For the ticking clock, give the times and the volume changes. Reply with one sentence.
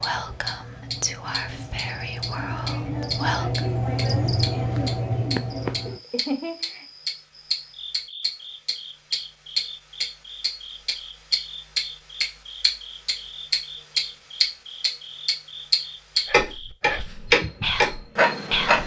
The ticking clock can be heard from 0.0 to 18.8 s, getting louder.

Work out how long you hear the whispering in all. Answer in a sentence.
The whispering can be heard for 6 seconds in total.